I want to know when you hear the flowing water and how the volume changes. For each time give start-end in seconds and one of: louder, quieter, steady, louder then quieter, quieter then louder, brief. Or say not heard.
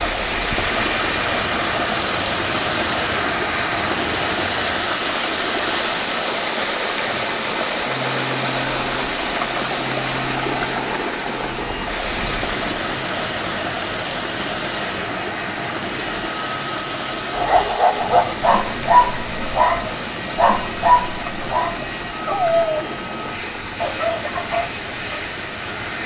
0.0-26.0 quieter.